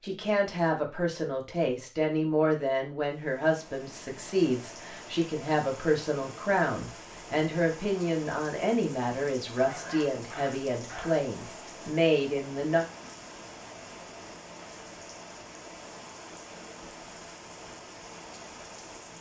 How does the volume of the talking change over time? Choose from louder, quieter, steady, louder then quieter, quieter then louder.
steady.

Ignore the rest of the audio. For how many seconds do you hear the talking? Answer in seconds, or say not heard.
13 s.